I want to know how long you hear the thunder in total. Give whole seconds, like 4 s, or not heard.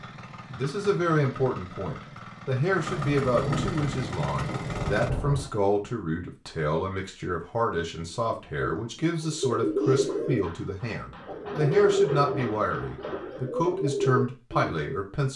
3 s.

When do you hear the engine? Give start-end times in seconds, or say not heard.
0.0-5.1.